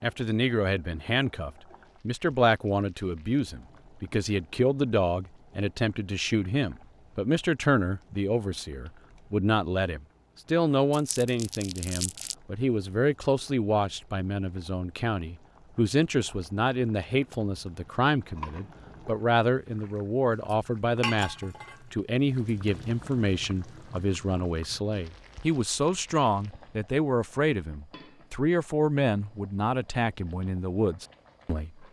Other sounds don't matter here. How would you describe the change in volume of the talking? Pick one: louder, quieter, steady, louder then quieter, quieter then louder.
steady.